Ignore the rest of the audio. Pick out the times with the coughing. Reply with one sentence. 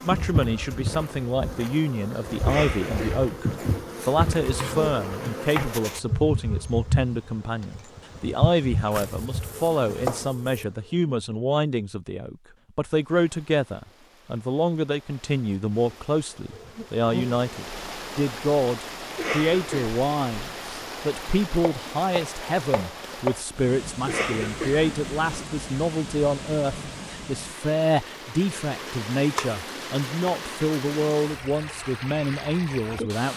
You can hear the coughing from 2.5 to 3.2 s, from 19.1 to 19.9 s and from 24.1 to 25.4 s.